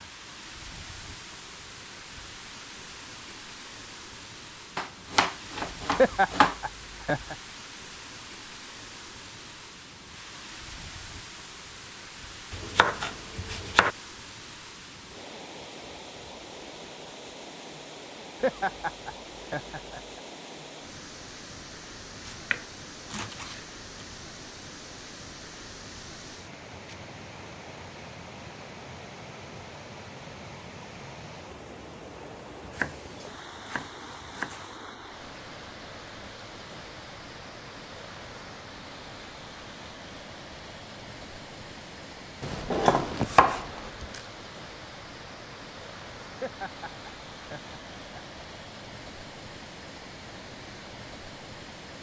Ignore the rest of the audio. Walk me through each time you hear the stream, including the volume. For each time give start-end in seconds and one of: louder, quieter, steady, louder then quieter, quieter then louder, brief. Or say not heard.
0.0-51.9 steady.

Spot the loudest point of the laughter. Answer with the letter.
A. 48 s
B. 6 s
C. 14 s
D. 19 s
B.